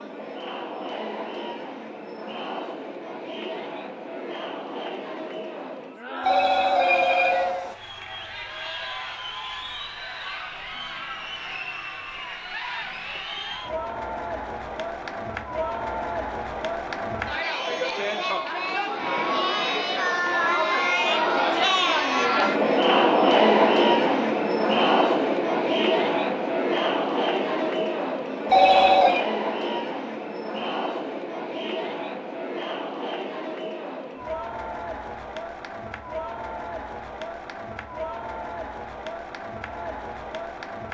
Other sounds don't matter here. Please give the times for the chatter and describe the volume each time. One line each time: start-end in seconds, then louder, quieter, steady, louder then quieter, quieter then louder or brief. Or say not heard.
0.0-40.8 louder then quieter.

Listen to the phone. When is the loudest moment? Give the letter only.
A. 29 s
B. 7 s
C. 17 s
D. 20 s
A.